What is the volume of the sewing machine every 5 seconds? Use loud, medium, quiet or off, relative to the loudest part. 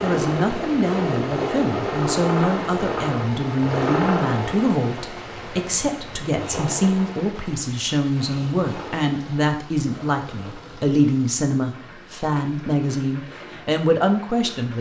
loud, medium, quiet.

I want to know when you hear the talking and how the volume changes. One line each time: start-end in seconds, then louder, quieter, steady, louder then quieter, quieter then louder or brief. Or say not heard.
0.0-14.7 steady.